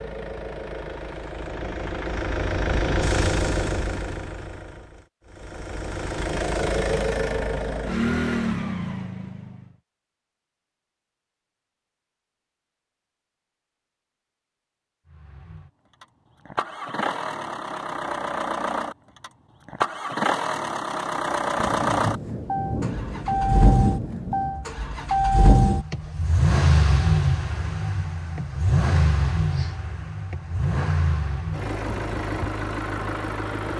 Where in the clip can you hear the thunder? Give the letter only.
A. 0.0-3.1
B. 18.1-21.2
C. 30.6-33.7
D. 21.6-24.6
D.